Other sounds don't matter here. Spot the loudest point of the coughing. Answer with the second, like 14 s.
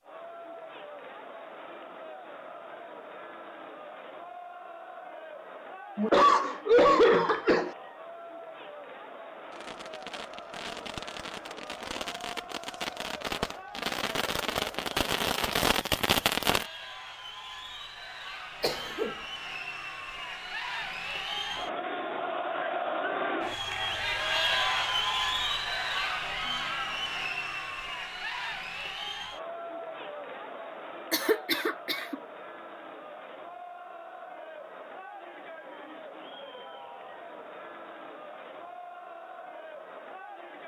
7 s.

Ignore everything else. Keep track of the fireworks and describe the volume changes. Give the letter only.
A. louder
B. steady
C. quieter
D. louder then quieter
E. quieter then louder
A.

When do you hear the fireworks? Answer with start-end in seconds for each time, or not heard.
9.5-16.7.